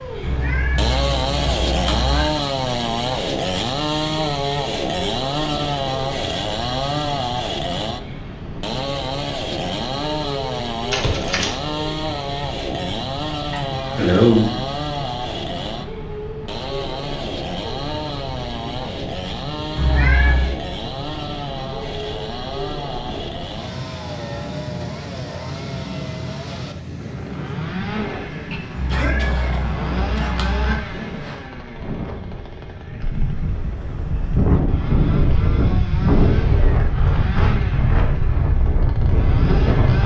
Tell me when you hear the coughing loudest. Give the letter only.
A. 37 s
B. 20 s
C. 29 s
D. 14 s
D.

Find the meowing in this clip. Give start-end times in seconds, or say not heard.
0.2-2.2, 19.8-20.6, 28.7-30.8.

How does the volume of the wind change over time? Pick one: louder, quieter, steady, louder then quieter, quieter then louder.
louder.